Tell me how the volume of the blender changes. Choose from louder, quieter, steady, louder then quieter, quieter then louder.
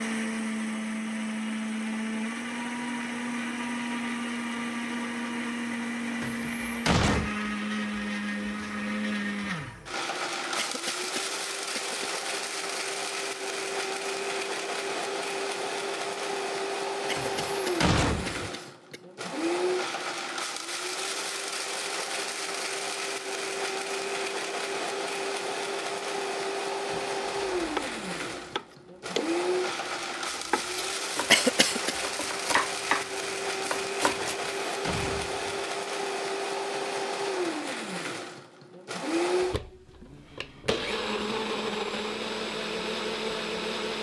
steady.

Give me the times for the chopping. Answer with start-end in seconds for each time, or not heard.
26.9-34.4.